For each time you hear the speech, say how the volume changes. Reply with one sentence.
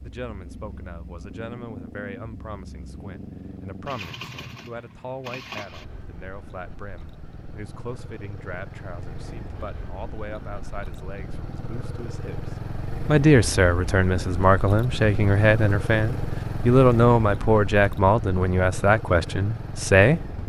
The speech can be heard from 0.0 to 20.2 s, getting louder.